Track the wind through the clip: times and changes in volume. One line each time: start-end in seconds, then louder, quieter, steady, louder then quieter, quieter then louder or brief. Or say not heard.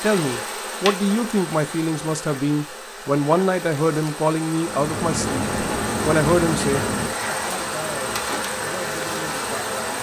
4.5-9.9 quieter.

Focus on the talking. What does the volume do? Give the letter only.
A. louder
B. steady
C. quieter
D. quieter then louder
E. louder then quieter
C.